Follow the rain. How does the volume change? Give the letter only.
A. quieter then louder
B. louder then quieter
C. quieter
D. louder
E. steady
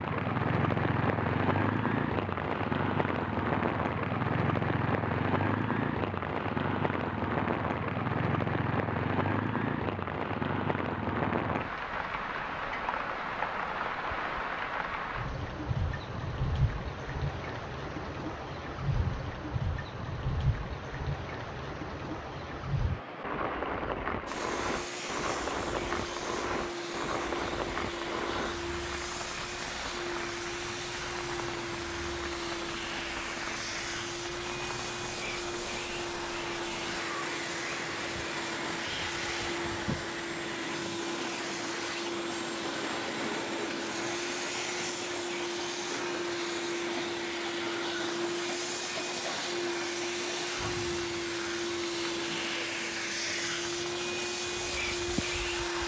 C.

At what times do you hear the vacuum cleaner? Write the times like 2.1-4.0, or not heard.
24.2-55.8.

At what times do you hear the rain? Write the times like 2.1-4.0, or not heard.
0.0-55.8.